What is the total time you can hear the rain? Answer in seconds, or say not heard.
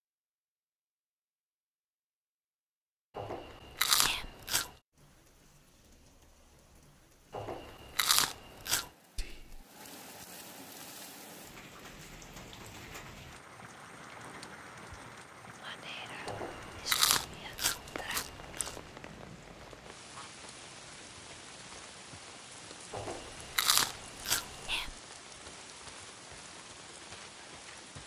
23 s.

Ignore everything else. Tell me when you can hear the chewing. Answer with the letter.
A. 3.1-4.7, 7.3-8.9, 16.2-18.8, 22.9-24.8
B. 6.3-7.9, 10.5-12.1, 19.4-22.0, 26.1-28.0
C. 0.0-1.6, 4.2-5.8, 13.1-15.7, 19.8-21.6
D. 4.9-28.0
A.